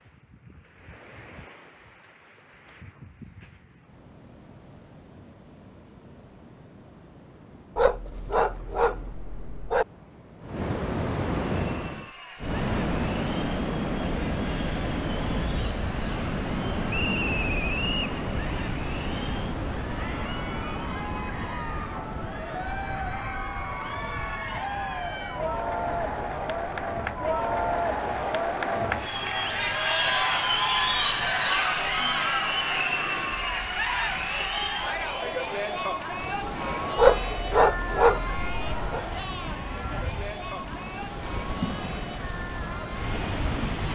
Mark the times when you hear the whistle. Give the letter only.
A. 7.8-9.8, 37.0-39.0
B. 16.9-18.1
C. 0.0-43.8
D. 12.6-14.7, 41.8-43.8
B.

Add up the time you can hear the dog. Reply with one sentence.
The dog can be heard for 4 seconds in total.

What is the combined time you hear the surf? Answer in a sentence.
The surf can be heard for 44 seconds in total.